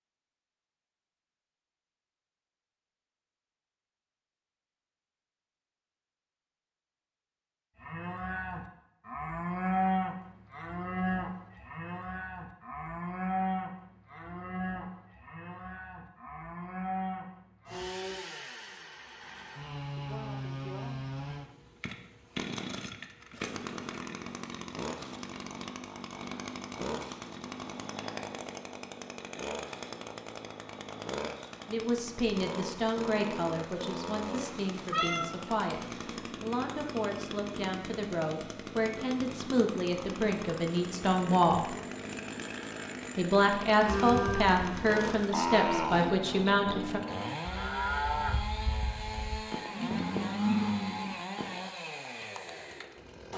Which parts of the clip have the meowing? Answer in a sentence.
You can hear the meowing from 34.4 to 35.4 s.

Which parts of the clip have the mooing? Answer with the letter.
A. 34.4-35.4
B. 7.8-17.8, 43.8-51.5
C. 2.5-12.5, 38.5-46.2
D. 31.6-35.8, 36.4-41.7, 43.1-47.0
B.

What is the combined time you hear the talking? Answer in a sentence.
The talking can be heard for 13 seconds in total.